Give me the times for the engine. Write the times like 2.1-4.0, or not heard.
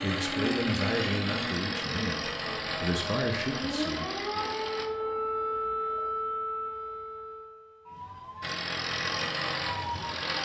0.0-4.9, 8.4-10.4.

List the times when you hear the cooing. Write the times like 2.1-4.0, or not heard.
not heard.